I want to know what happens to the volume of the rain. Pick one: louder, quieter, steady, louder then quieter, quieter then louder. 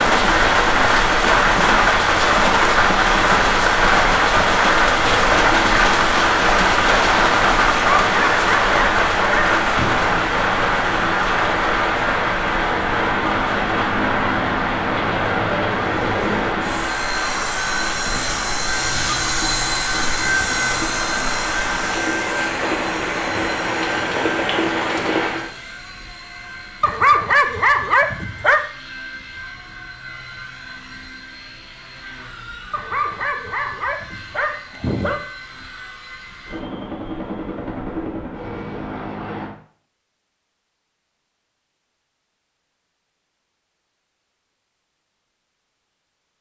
quieter.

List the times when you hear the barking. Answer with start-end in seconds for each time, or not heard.
7.7-10.0, 26.8-28.6, 32.7-35.2.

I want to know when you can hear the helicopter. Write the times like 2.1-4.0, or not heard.
9.9-39.5.